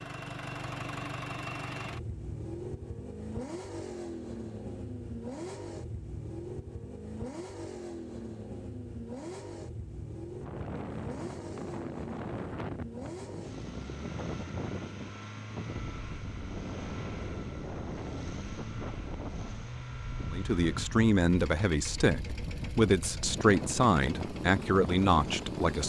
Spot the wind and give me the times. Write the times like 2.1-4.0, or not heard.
10.4-25.8.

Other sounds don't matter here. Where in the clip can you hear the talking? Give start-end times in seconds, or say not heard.
20.3-25.8.